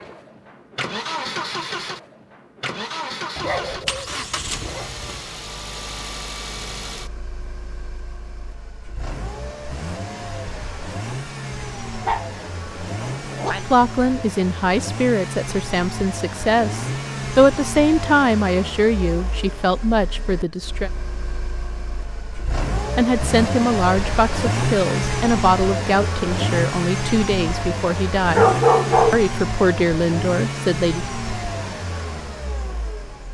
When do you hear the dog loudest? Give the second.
29 s.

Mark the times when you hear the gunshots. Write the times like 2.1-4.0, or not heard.
not heard.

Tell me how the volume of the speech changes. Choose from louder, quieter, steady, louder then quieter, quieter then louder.
steady.